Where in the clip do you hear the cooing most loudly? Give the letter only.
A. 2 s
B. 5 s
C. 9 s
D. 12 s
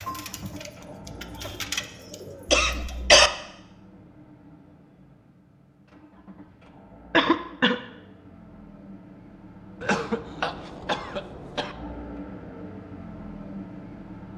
A.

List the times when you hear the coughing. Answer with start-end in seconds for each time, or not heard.
2.5-3.3, 7.1-7.8, 9.8-11.8.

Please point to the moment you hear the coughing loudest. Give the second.
3 s.